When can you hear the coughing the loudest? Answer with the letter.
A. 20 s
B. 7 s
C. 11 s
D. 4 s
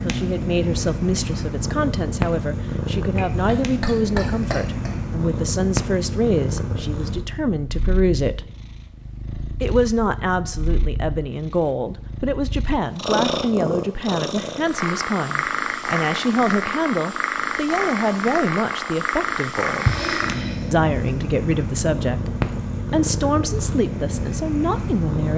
A.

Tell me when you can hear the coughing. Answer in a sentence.
The coughing can be heard from 3.1 to 4.9 s and from 19.8 to 20.7 s.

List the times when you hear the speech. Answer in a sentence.
The speech can be heard from 0.0 to 8.5 s, from 9.6 to 19.9 s and from 20.7 to 25.3 s.